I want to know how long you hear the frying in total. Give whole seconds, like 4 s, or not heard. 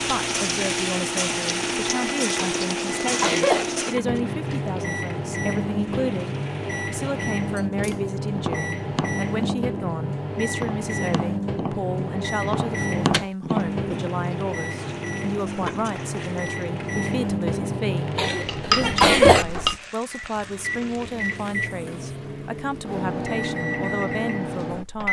16 s.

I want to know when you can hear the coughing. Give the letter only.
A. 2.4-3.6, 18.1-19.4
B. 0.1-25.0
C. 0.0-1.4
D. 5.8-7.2
A.